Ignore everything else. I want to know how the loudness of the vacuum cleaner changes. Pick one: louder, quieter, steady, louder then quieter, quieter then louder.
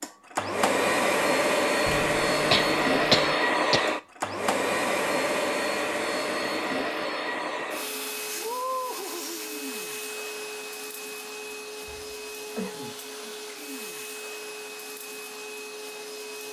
quieter.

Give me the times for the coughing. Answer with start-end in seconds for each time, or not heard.
2.5-4.0, 11.4-13.3.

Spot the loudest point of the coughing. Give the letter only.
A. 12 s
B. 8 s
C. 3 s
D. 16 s
C.